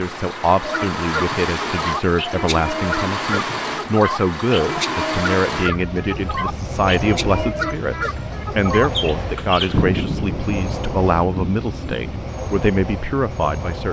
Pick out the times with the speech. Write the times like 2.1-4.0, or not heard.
0.0-13.8.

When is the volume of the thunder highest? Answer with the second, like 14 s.
10 s.